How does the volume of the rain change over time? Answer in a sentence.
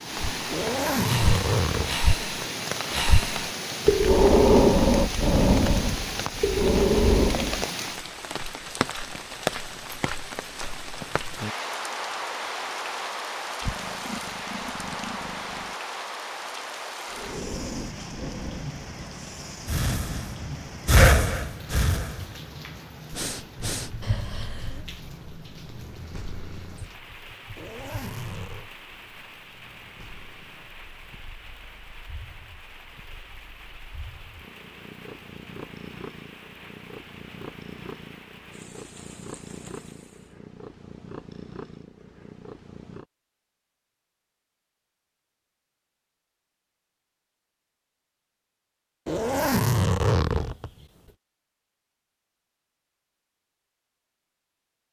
The volume of the rain goes down.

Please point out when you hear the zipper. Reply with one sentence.
The zipper can be heard from 0.5 to 1.9 s, from 27.6 to 28.6 s and from 49.0 to 50.9 s.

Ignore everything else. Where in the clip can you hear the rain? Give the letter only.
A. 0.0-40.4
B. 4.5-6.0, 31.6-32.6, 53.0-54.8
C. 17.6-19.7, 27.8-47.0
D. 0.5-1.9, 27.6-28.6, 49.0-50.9
A.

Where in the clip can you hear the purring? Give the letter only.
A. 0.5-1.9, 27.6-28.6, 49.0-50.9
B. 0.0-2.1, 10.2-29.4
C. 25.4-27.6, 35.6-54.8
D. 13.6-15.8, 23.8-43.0
D.